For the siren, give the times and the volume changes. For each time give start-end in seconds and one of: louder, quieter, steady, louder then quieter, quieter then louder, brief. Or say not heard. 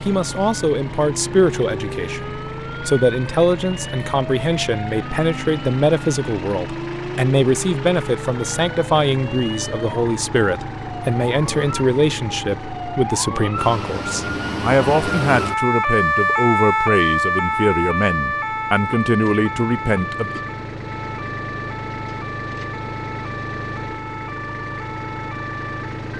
0.1-26.1 louder then quieter.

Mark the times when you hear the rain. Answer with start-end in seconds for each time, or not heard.
not heard.